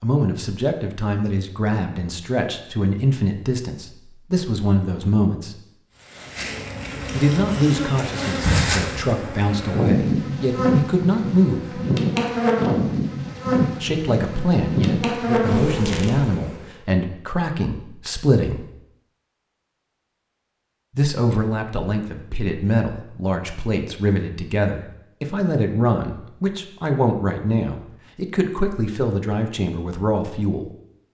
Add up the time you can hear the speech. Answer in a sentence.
You can hear the speech for 25 seconds altogether.